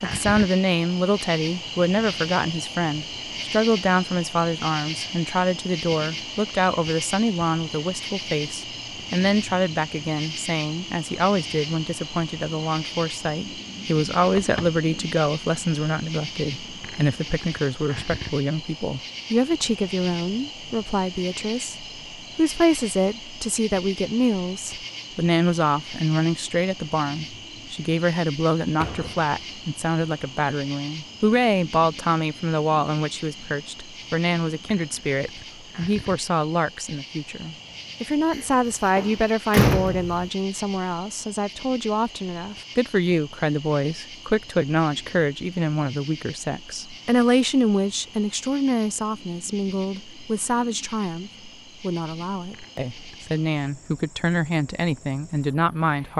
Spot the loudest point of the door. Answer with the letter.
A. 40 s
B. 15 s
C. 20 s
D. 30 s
A.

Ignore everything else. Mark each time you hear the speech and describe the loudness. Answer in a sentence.
The speech can be heard from 0.0 to 56.1 s, at a steady volume.